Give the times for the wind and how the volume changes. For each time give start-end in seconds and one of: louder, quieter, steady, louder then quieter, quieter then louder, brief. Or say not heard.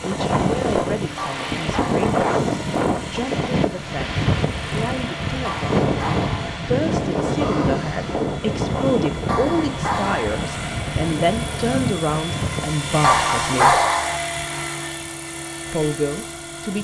0.0-13.1 quieter.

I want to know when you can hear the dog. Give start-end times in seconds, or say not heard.
1.1-2.2, 5.4-6.5, 9.2-10.4, 13.0-14.2.